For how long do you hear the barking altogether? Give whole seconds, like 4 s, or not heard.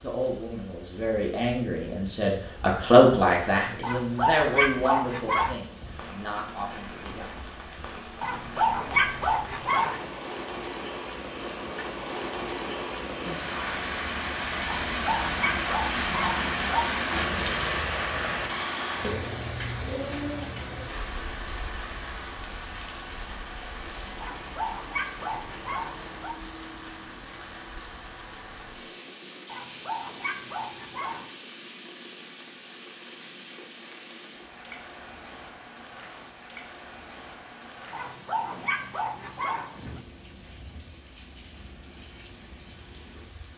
12 s.